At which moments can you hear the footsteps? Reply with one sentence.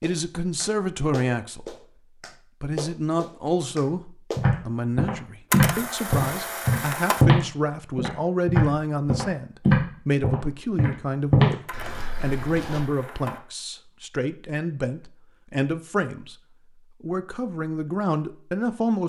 The footsteps can be heard from 4.3 to 12.8 s.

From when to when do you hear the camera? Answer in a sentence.
You can hear the camera from 5.5 to 7.2 s and from 11.7 to 13.4 s.